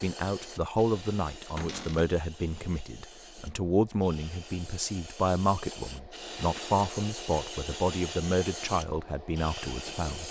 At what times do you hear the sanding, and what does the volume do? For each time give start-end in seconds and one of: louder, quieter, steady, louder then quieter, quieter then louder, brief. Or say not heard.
not heard.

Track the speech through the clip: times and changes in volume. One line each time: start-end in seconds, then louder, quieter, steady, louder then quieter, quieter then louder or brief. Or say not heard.
0.0-10.2 steady.